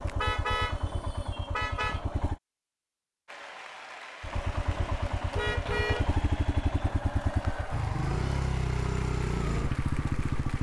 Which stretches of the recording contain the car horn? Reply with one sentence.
You can hear the car horn from 0.1 to 2.0 s and from 5.3 to 6.2 s.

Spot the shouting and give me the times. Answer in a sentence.
You can't hear the shouting here.